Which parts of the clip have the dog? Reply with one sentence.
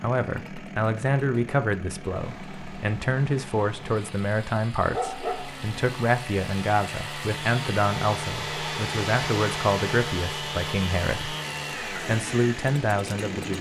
You can hear the dog from 4.9 to 5.8 s.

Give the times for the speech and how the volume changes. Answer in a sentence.
The speech can be heard from 0.0 to 13.5 s, at a steady volume.